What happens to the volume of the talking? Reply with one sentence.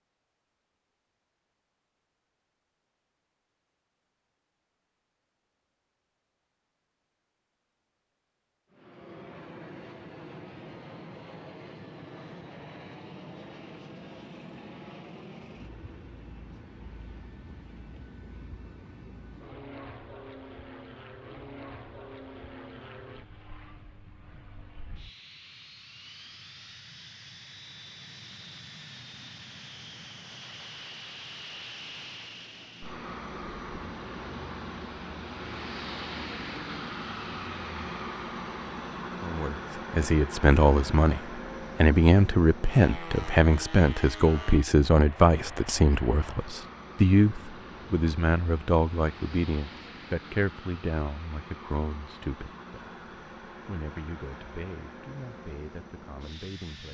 The loudness of the talking goes down.